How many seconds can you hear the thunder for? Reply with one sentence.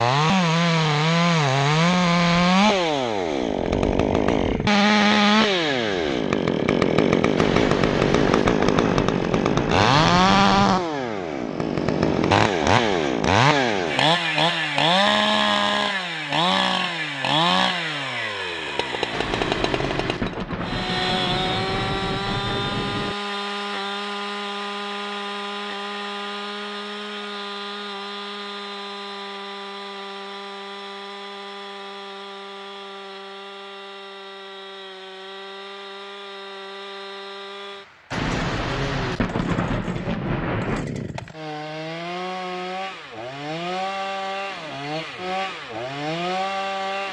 You can hear the thunder for 10 seconds altogether.